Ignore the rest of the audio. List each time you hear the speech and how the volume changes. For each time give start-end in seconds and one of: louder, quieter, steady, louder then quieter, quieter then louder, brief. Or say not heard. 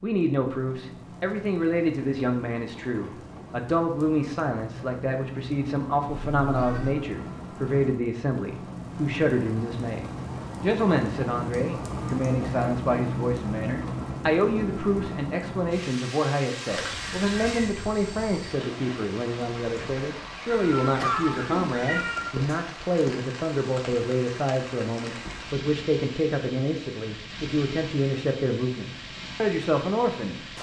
0.0-30.4 steady.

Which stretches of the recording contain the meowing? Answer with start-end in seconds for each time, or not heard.
6.0-7.0, 16.7-18.6, 20.4-22.3.